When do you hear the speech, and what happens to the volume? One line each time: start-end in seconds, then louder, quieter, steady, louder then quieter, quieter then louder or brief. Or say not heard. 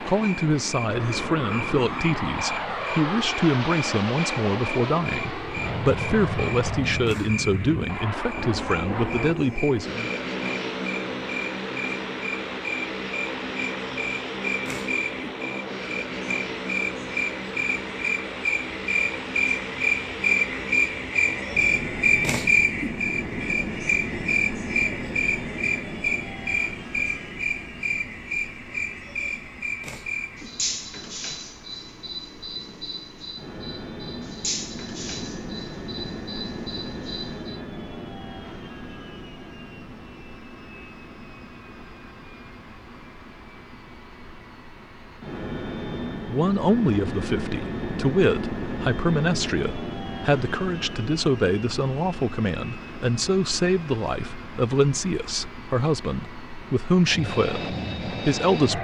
0.0-10.1 steady
46.2-58.7 steady.